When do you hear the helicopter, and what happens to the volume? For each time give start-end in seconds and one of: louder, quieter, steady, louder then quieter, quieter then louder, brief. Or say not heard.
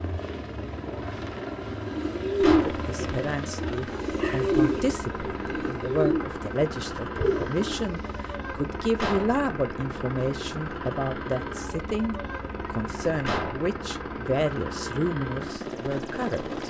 0.0-16.6 steady.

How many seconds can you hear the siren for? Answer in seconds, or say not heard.
not heard.